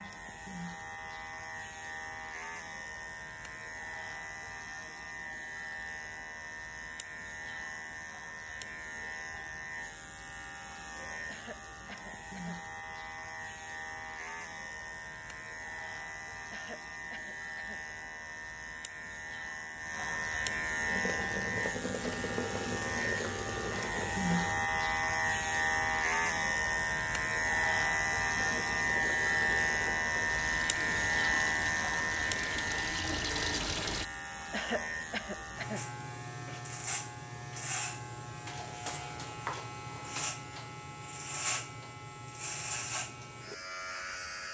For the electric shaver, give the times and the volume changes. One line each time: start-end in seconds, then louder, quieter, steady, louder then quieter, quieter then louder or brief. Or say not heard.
0.0-44.4 louder then quieter.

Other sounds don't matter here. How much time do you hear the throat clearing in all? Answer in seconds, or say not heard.
4 s.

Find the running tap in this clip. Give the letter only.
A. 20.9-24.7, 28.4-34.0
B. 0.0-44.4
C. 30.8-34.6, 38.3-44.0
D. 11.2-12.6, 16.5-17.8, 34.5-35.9
A.